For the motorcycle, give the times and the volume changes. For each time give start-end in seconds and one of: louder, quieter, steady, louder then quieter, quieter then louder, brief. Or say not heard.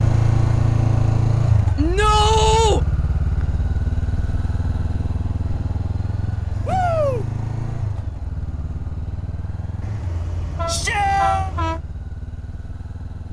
0.0-13.2 quieter.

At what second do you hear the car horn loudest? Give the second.
11 s.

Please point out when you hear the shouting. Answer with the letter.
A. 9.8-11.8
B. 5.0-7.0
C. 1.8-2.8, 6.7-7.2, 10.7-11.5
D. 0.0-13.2
C.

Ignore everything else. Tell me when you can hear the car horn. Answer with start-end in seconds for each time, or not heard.
9.8-11.8.